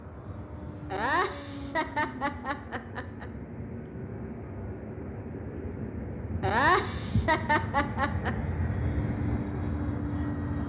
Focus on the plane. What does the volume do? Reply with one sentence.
The volume of the plane goes up.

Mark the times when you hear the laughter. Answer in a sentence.
You can hear the laughter from 0.9 to 3.2 s and from 6.4 to 8.3 s.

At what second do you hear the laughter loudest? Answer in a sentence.
The volume of the laughter peaks at 7 seconds.